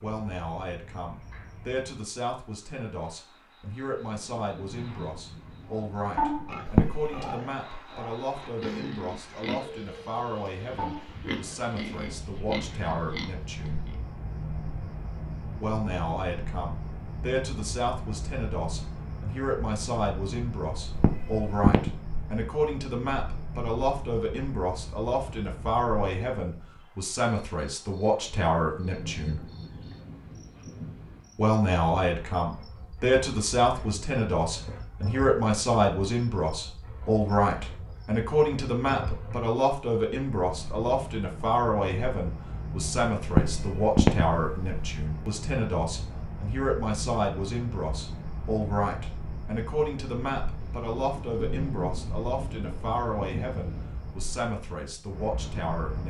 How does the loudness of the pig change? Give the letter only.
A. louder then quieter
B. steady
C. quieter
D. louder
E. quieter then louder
B.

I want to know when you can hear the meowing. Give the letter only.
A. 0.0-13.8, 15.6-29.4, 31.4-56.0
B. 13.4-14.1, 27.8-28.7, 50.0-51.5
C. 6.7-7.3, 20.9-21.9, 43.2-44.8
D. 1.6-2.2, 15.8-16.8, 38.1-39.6
C.